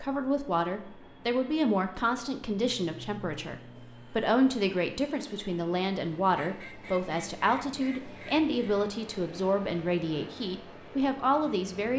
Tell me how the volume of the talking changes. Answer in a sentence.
The loudness of the talking stays about the same.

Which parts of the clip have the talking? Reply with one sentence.
The talking can be heard from 0.0 to 11.9 s.